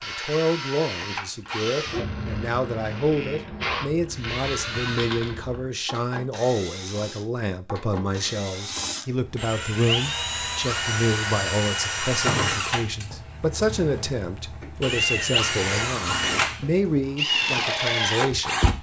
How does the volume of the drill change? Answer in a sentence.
The volume of the drill goes up.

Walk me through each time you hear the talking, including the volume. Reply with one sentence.
The talking can be heard from 0.0 to 18.7 s, at a steady volume.